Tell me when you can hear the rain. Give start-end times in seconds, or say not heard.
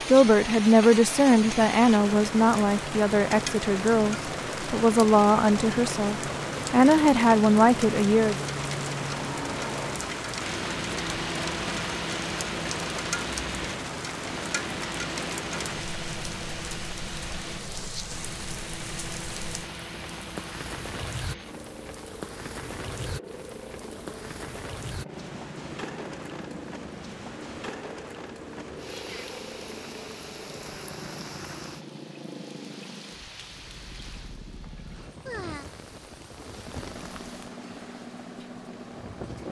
0.0-39.4.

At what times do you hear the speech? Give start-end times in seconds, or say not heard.
0.1-8.4.